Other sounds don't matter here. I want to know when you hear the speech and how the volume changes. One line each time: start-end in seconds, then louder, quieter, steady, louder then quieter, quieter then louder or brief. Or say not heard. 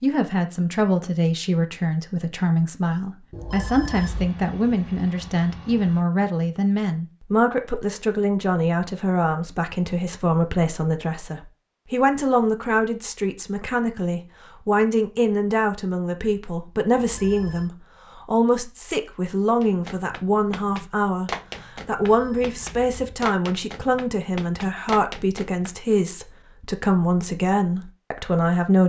0.0-28.8 steady.